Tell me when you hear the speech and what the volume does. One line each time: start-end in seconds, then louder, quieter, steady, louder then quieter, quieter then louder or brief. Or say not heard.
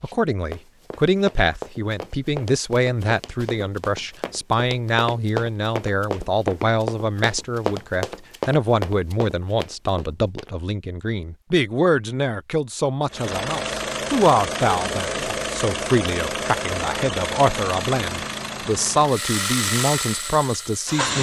0.0-21.1 steady.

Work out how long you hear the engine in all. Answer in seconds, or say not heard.
8 s.